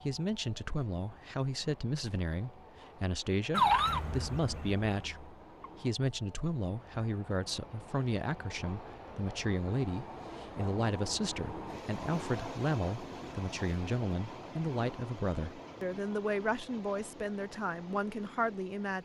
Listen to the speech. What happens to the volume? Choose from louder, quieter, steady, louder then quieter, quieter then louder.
steady.